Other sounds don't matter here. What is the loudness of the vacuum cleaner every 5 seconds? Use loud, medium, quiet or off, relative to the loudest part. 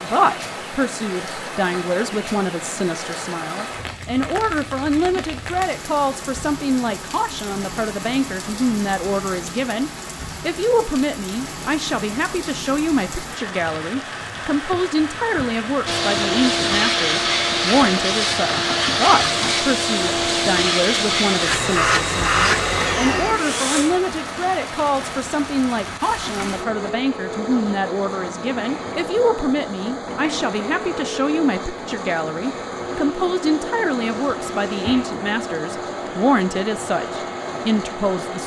off, off, off, loud, loud, quiet, quiet, quiet.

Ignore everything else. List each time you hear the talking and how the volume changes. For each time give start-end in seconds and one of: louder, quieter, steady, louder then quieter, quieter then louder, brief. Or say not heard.
0.0-38.4 steady.